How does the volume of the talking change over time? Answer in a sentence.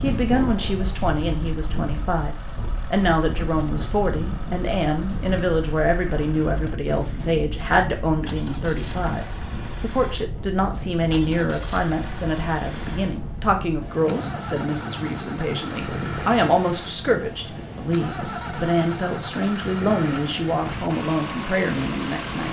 The loudness of the talking stays about the same.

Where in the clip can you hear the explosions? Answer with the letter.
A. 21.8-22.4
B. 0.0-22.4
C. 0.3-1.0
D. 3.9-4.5
C.